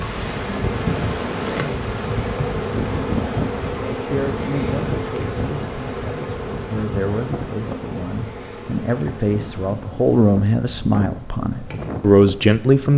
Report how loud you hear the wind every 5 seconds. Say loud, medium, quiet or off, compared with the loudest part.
loud, medium, medium.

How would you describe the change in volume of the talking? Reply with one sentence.
The loudness of the talking goes up.